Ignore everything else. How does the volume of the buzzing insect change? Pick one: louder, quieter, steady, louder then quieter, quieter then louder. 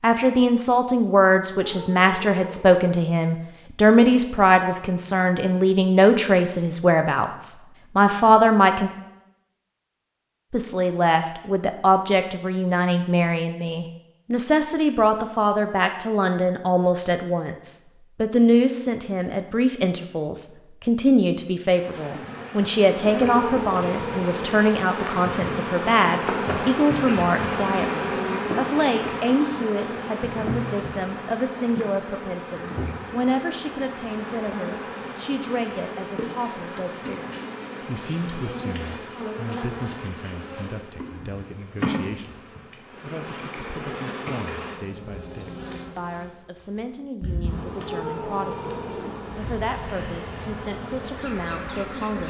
quieter.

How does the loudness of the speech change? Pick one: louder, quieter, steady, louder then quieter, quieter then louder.
quieter.